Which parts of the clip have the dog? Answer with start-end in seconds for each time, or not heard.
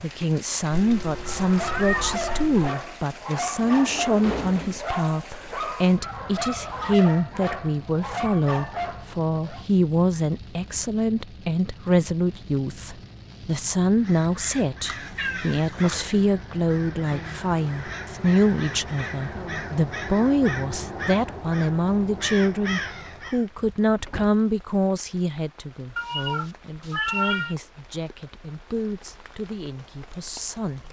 1.1-9.7.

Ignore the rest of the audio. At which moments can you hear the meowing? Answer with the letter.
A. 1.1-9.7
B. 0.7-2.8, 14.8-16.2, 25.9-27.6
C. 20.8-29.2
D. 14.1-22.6
B.